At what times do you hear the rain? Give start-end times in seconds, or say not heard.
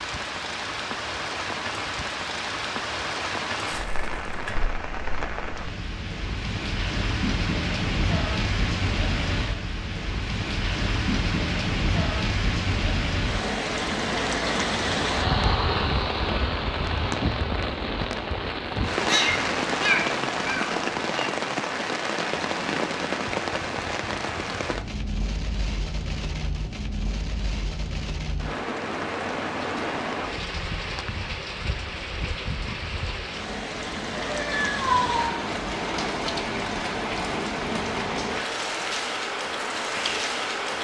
0.0-40.7.